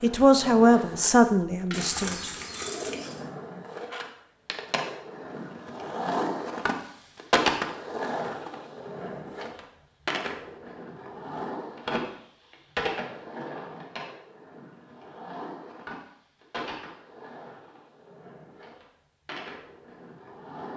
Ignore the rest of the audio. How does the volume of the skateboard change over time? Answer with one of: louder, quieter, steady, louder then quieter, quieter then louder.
louder then quieter.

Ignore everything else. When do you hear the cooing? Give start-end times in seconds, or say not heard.
1.7-3.2.